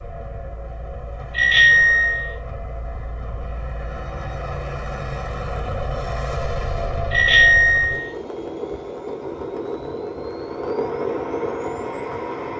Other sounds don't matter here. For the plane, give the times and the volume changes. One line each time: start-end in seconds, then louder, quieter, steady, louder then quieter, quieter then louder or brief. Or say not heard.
0.0-12.5 louder.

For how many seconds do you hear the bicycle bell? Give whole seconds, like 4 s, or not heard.
2 s.